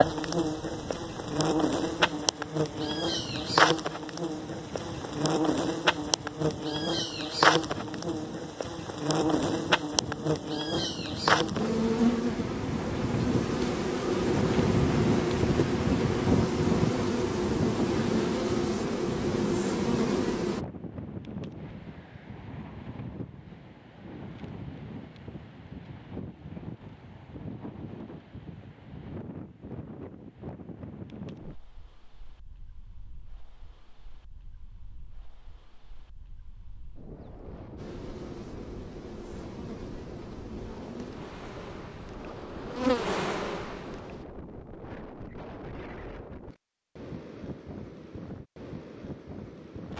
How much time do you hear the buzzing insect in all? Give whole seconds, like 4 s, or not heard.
27 s.